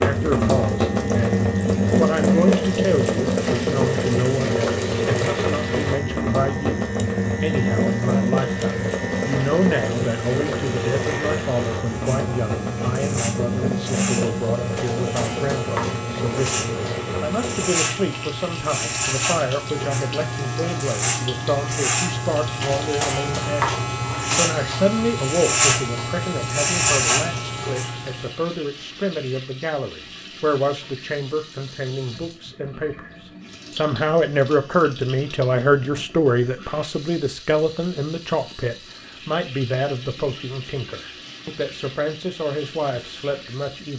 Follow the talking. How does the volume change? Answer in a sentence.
The loudness of the talking stays about the same.